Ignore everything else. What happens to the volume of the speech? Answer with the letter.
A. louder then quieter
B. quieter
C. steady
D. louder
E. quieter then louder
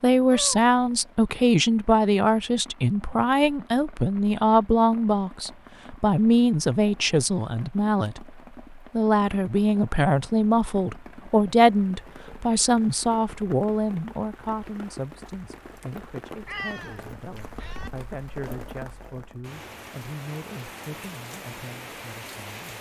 B.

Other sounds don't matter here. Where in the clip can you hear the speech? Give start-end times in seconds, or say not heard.
0.0-22.7.